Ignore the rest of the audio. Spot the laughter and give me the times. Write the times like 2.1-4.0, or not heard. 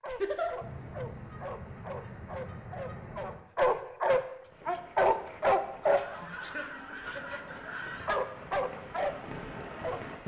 0.1-0.5, 6.2-7.7.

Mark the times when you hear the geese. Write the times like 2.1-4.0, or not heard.
0.6-3.5, 6.0-8.2.